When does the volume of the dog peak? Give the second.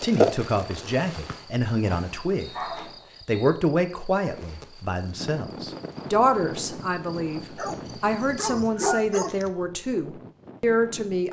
9 s.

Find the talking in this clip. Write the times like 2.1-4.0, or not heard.
0.0-2.5, 3.2-11.2.